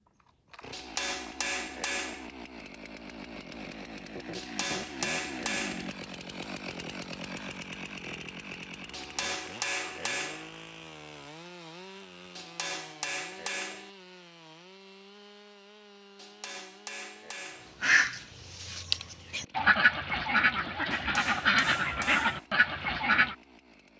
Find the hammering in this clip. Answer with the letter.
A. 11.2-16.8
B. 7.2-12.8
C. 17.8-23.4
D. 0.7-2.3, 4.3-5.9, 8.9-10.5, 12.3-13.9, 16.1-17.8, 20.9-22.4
D.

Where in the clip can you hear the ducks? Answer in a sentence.
The ducks can be heard from 17.8 to 23.4 s.